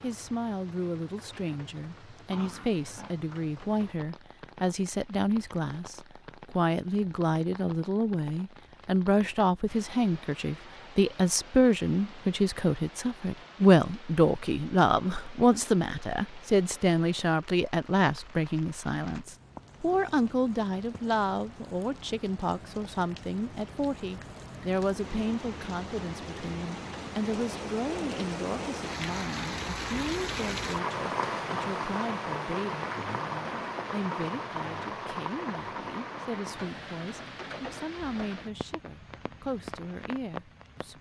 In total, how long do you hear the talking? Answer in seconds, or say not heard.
41 s.